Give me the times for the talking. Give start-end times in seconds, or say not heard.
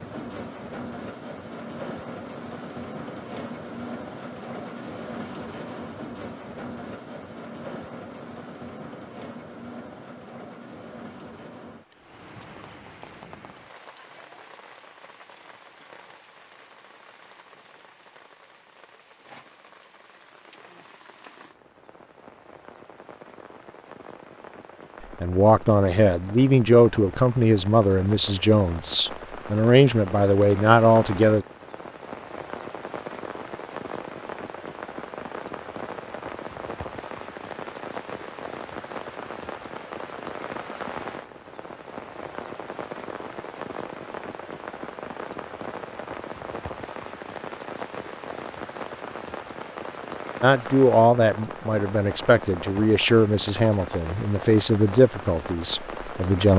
25.2-31.4, 50.4-56.5.